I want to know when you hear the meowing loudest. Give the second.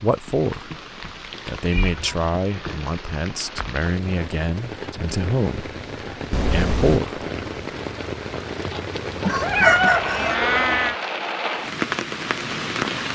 10 s.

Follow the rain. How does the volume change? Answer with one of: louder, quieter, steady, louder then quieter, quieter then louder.
louder.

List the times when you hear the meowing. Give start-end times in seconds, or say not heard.
1.4-2.0, 6.3-7.0, 9.2-10.9.